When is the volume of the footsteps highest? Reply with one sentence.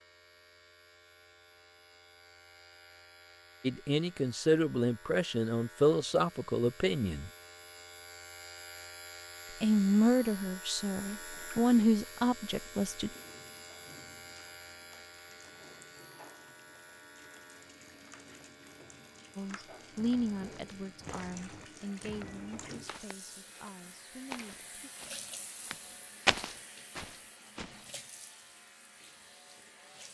The loudest moment of the footsteps is at 26 seconds.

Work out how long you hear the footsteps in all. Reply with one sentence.
You can hear the footsteps for 8 seconds altogether.